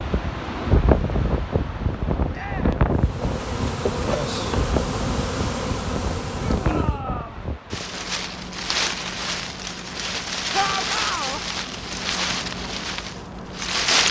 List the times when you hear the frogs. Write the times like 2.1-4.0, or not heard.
not heard.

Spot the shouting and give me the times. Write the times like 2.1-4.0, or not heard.
2.3-2.8, 6.3-7.5, 10.5-11.4.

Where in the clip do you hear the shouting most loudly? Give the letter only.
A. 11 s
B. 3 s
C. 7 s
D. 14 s
A.